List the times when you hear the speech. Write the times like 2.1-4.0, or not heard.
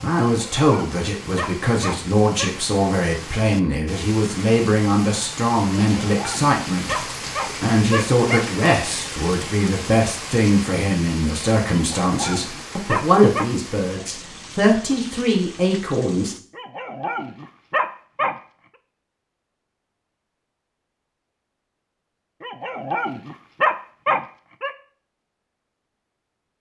0.0-7.0, 7.6-16.4.